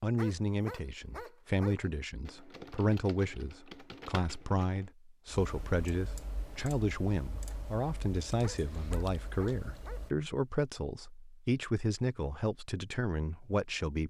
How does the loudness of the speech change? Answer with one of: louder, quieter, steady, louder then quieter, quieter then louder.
steady.